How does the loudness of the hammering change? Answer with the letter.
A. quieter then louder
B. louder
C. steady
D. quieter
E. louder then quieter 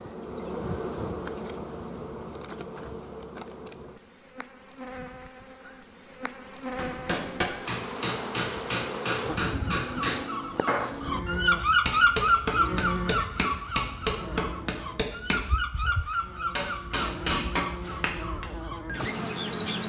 C.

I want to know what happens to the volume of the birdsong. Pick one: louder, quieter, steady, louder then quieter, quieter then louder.
quieter.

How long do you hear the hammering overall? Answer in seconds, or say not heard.
12 s.